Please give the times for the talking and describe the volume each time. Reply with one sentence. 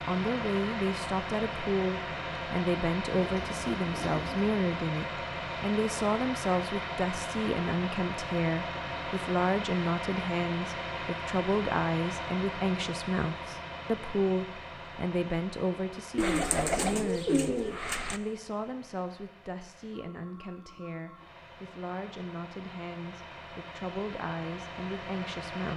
You can hear the talking from 0.1 to 25.7 s, getting quieter.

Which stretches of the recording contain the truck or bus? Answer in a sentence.
You can hear the truck or bus from 0.0 to 25.7 s.